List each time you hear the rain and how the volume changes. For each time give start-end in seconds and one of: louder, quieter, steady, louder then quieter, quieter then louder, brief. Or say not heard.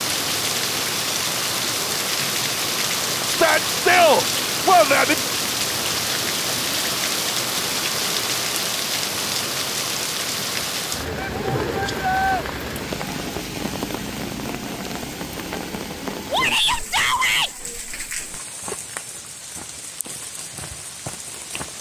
0.0-21.7 quieter.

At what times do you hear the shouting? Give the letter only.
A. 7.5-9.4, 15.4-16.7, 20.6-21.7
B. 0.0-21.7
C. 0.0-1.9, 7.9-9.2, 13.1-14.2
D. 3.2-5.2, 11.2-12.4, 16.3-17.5
D.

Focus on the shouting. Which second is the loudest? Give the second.
4 s.